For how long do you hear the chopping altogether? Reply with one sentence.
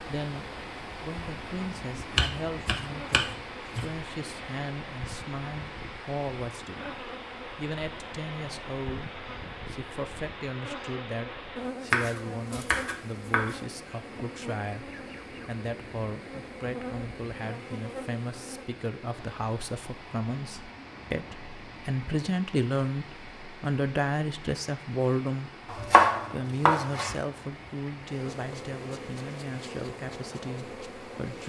You can hear the chopping for 5 seconds altogether.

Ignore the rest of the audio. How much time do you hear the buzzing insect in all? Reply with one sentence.
The buzzing insect can be heard for 22 seconds in total.